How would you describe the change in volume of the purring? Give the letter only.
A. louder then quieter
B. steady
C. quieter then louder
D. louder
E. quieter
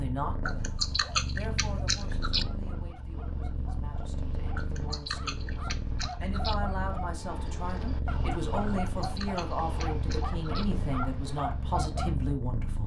B.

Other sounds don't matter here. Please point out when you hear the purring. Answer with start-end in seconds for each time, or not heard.
0.0-12.8.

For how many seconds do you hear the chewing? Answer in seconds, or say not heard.
6 s.